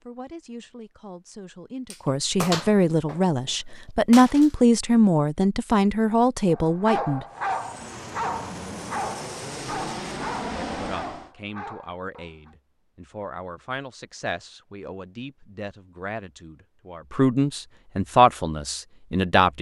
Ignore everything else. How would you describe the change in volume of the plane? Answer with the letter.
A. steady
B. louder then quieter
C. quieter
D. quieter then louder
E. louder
E.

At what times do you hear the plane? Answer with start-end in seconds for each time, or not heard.
7.2-11.3.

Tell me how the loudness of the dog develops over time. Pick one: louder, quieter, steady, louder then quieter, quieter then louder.
quieter.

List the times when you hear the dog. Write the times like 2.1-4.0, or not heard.
6.5-12.6.